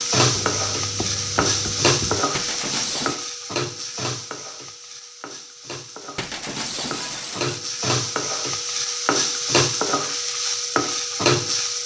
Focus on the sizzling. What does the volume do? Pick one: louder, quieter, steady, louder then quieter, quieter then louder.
quieter then louder.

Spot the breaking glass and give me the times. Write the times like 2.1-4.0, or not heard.
2.4-3.2, 6.2-7.7.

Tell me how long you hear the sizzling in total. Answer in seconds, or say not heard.
12 s.